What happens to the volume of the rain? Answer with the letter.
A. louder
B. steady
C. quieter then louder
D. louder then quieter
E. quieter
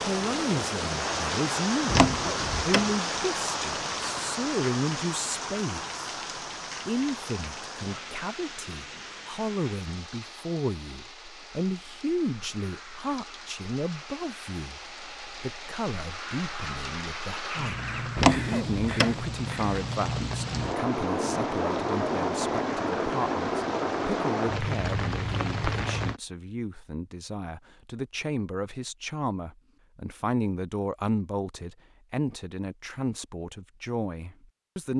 C.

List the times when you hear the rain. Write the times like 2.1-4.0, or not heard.
0.0-26.2.